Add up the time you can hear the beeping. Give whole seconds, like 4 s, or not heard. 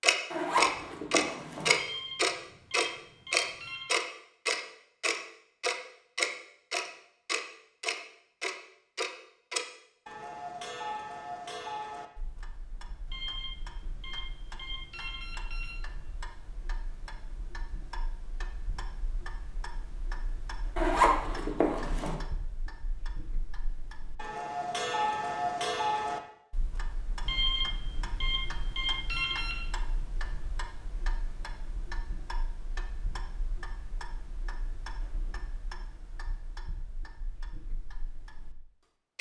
7 s.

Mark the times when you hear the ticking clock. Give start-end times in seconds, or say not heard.
0.0-38.5.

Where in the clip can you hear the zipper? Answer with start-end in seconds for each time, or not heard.
0.3-1.7, 20.8-22.1.